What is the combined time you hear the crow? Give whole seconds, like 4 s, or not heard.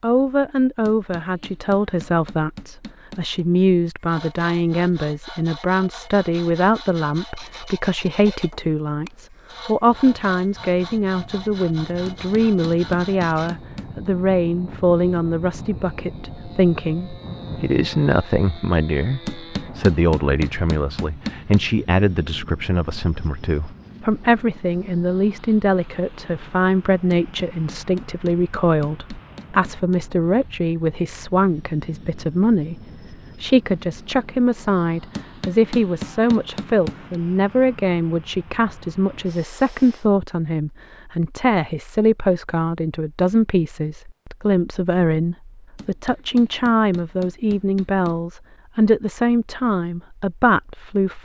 not heard.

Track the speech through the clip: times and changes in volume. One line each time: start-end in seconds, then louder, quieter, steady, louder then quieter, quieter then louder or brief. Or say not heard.
0.0-51.2 steady.